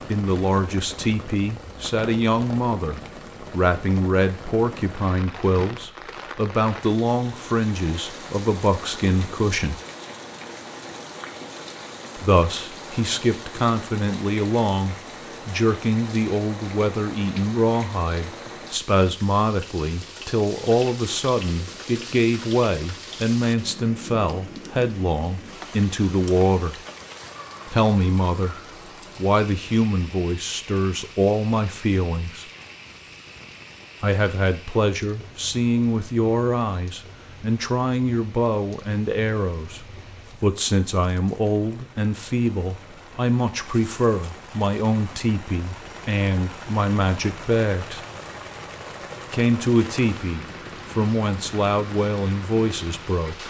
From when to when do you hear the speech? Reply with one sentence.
You can hear the speech from 0.0 to 9.8 s, from 12.2 to 26.8 s, from 27.6 to 32.5 s, from 34.0 to 48.0 s and from 49.3 to 53.4 s.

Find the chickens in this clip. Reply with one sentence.
You can't hear the chickens here.